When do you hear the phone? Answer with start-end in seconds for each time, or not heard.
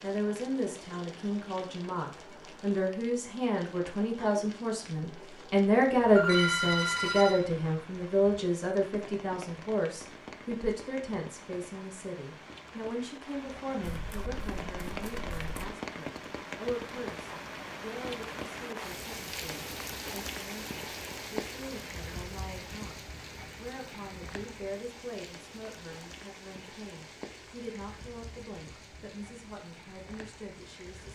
6.2-7.4.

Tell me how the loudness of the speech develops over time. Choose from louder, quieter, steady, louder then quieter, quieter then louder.
quieter.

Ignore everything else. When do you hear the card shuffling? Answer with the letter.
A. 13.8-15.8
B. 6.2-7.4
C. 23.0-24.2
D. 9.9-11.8
A.